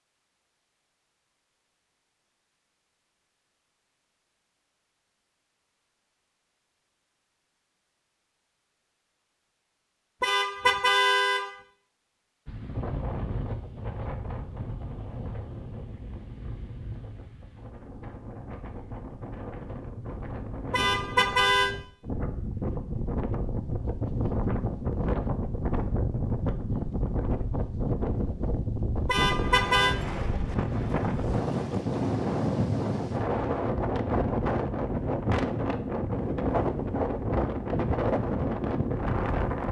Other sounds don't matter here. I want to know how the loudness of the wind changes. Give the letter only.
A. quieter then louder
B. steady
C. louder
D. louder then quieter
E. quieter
C.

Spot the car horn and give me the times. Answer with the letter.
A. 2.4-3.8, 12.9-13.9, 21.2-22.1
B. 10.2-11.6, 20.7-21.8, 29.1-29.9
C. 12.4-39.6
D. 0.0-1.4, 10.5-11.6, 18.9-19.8
B.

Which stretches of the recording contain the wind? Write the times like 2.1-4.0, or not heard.
12.4-39.6.